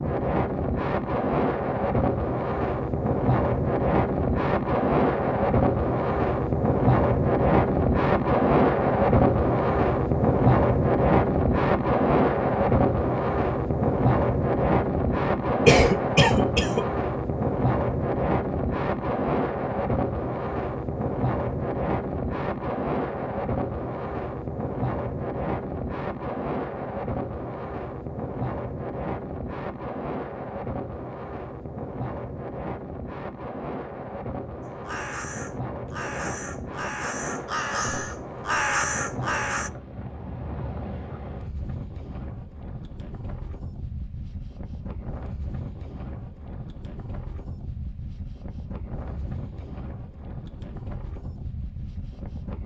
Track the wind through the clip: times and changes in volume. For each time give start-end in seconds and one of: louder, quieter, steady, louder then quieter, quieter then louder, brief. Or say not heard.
0.0-52.6 quieter.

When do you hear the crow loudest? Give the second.
39 s.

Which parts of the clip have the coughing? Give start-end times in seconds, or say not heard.
15.7-16.9.